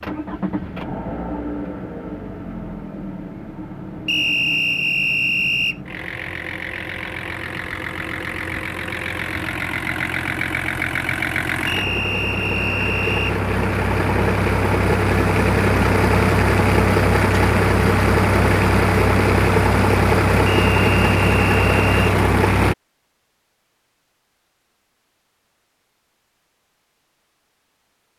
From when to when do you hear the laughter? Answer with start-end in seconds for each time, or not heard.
not heard.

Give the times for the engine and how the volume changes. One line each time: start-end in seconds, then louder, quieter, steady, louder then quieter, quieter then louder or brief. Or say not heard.
0.0-22.8 louder.